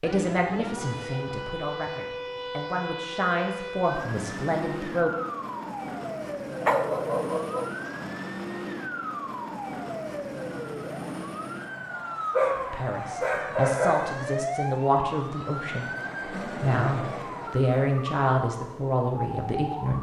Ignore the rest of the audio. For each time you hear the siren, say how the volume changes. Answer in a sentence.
You can hear the siren from 0.0 to 19.9 s, at a steady volume.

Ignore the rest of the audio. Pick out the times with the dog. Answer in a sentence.
You can hear the dog from 6.6 to 7.8 s and from 12.3 to 14.2 s.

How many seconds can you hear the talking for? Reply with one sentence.
You can hear the talking for 12 seconds altogether.